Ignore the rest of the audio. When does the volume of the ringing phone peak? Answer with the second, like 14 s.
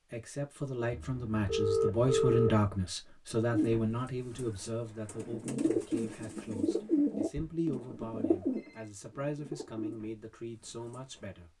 2 s.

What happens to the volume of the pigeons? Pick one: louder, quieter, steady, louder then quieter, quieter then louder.
louder then quieter.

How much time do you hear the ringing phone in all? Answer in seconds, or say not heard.
3 s.